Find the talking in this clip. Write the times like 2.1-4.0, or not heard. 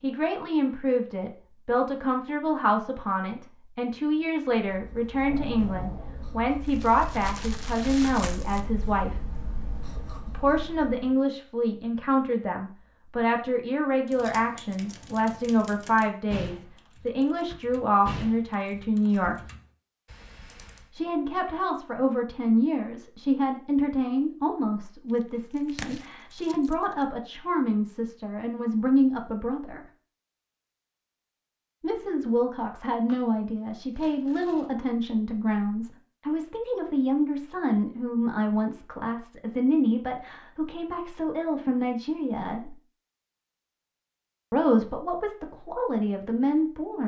0.0-9.2, 10.2-19.4, 20.9-29.8, 31.8-42.8, 44.5-47.0.